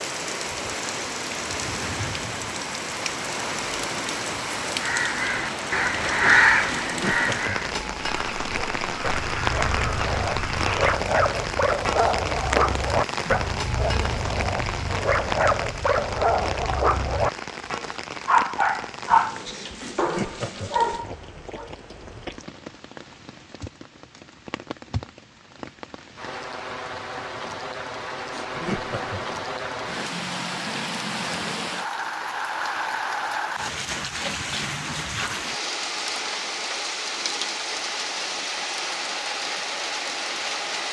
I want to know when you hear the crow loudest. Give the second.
6 s.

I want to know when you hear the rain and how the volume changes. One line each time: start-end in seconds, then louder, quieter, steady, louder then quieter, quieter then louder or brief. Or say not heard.
0.0-40.8 quieter then louder.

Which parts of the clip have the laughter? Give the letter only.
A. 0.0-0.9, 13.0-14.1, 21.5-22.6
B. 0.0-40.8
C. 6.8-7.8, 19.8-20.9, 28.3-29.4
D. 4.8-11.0
C.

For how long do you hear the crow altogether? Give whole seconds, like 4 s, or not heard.
6 s.